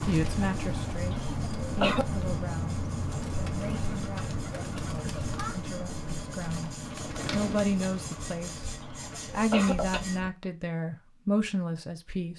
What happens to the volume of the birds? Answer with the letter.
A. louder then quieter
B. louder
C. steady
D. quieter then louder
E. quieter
E.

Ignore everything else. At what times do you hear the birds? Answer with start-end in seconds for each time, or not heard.
0.0-10.3.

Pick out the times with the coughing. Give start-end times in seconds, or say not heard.
1.1-2.0, 5.0-5.5, 8.8-10.0.